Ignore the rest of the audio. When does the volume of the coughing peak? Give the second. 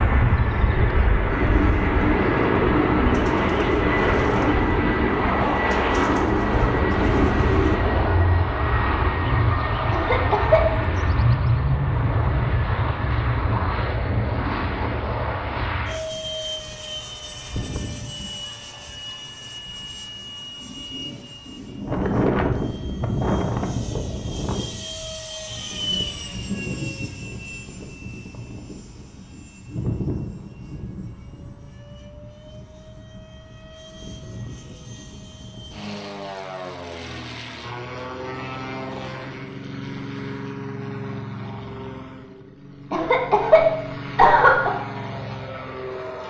44 s.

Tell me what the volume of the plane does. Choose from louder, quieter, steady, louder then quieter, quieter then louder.
quieter.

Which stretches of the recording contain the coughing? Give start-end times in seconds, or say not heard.
9.9-10.8, 42.9-44.7.